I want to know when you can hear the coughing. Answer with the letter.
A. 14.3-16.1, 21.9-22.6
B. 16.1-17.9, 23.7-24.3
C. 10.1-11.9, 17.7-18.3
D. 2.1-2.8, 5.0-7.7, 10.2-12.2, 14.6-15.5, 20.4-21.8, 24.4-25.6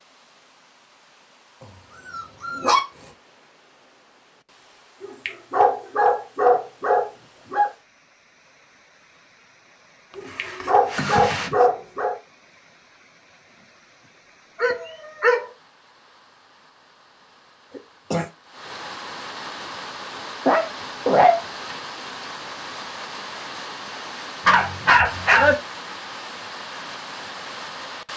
C.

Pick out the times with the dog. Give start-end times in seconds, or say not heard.
2.1-2.8, 5.0-7.7, 10.2-12.2, 14.6-15.5, 20.4-21.8, 24.4-25.6.